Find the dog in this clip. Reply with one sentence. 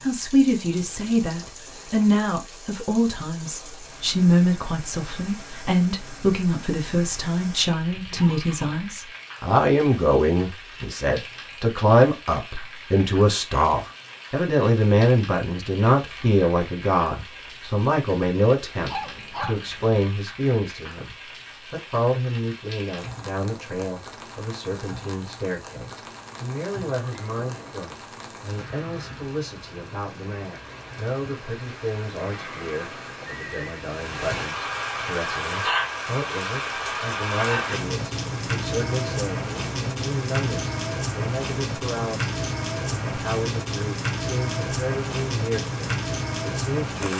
The dog can be heard from 18.9 to 20.0 s.